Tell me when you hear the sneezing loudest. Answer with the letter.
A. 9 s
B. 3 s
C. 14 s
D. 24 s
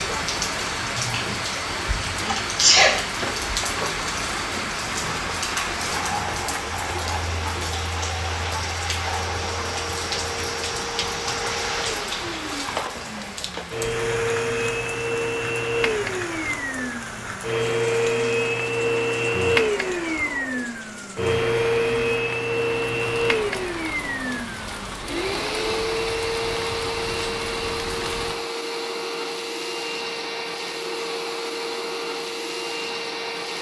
B.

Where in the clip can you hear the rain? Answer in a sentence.
You can hear the rain from 0.0 to 28.4 s.